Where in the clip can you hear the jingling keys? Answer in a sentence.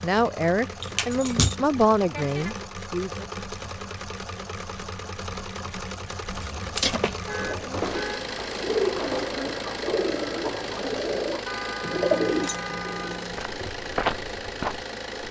The jingling keys can be heard from 0.8 to 1.6 s, from 6.2 to 7.2 s and from 12.1 to 13.5 s.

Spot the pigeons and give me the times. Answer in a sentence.
The pigeons can be heard from 7.3 to 13.2 s.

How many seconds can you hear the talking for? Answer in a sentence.
The talking can be heard for 3 seconds in total.